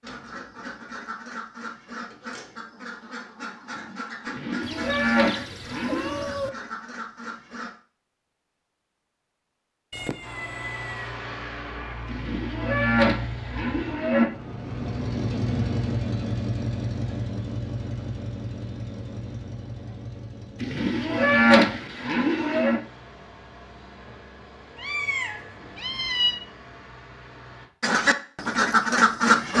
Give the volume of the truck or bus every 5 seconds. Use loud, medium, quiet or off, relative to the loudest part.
off, off, medium, loud, quiet, quiet.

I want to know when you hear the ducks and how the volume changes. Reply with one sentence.
The ducks can be heard from 0.0 to 7.7 s, at a steady volume; and briefly from 27.8 to 29.5 s.